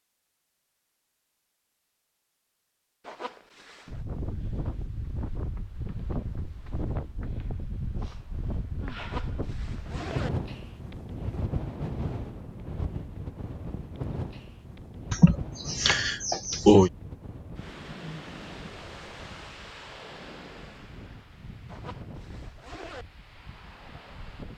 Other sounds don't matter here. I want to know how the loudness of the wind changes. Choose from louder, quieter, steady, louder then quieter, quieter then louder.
quieter.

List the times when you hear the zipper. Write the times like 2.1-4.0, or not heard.
3.0-4.0, 8.9-10.3, 21.6-23.1.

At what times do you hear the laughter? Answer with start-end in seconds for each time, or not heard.
15.1-16.9.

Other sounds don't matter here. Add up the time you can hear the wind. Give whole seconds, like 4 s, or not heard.
21 s.